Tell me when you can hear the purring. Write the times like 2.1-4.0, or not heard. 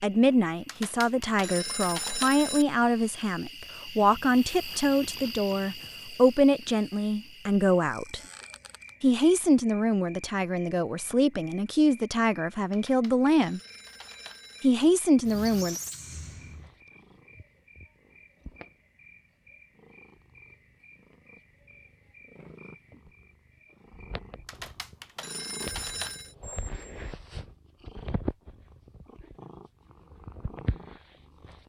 16.4-31.6.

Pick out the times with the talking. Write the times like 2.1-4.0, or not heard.
0.0-8.2, 9.0-13.6, 14.6-15.8.